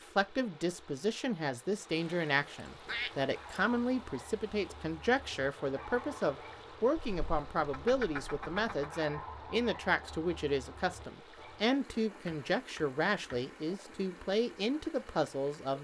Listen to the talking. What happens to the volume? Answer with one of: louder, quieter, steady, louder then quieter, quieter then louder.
steady.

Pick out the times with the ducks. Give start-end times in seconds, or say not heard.
2.9-3.6, 7.0-8.9, 12.2-13.4.